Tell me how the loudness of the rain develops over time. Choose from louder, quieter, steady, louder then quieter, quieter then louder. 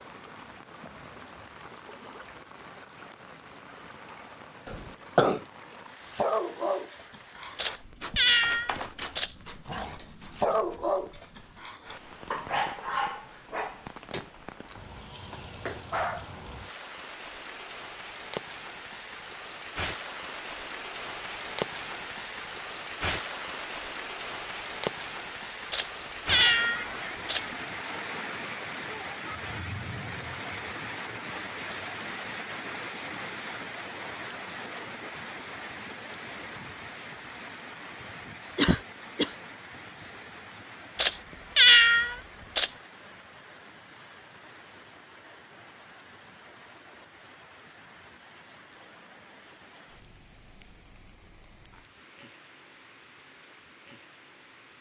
louder then quieter.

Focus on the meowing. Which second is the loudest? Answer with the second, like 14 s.
42 s.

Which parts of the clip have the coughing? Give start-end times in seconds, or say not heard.
4.7-5.4, 38.5-39.4.